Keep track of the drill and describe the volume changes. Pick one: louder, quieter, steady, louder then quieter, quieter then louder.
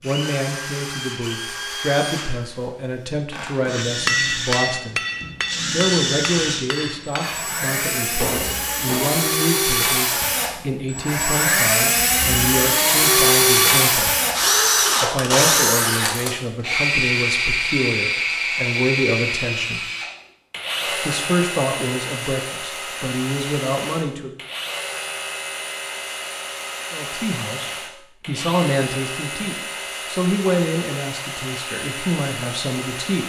louder then quieter.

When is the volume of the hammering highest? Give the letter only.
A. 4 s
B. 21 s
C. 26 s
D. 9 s
A.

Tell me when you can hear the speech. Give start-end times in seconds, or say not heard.
0.0-5.0, 5.7-14.2, 15.0-19.9, 20.9-24.4, 26.9-33.2.